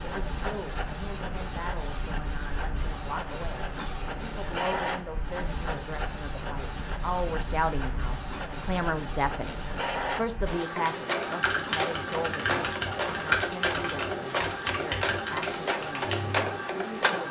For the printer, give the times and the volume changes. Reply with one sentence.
The printer can be heard from 0.0 to 17.2 s, getting louder.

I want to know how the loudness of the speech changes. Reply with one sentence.
The volume of the speech goes up, then down.